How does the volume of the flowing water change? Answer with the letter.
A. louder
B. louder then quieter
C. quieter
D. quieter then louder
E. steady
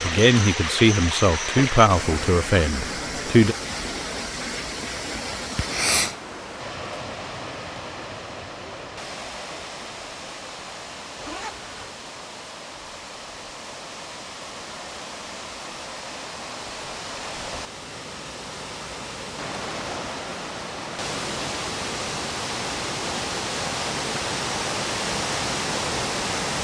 D.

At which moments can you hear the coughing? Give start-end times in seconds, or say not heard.
5.5-6.2.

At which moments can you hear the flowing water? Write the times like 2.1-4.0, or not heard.
0.0-26.5.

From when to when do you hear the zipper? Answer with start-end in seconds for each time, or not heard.
11.2-11.9.